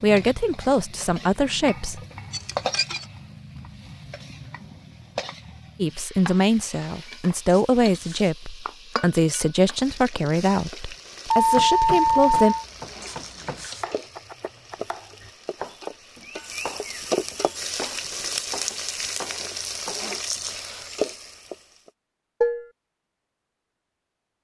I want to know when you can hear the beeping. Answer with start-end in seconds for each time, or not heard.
11.3-12.5.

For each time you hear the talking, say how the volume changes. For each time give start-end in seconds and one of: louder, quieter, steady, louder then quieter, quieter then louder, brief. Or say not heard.
0.0-2.0 brief
5.8-12.6 steady.